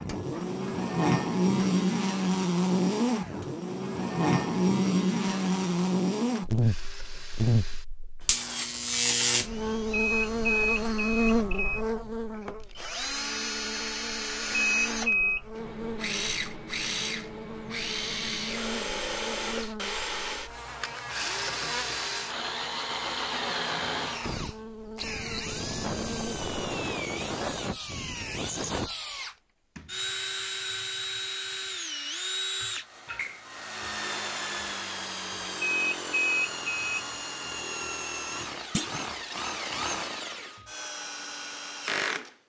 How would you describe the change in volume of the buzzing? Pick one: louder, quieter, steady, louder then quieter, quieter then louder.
quieter.